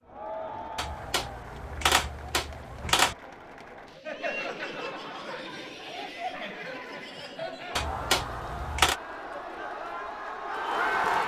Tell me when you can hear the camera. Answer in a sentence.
You can hear the camera from 0.8 to 3.1 s and from 7.8 to 8.9 s.